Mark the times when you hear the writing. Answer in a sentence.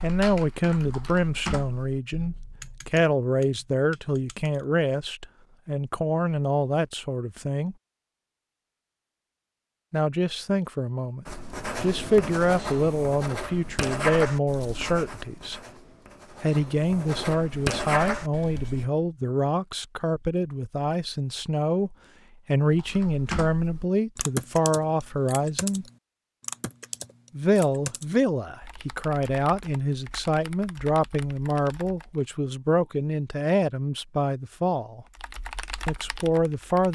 You can hear the writing from 11.2 to 18.9 s.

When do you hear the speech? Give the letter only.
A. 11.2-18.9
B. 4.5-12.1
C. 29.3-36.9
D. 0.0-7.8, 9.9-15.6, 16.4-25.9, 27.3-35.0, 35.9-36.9
D.